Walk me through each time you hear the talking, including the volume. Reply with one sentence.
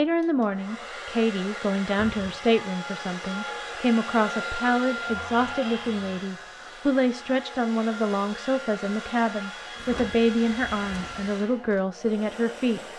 The talking can be heard from 0.0 to 12.8 s, at a steady volume.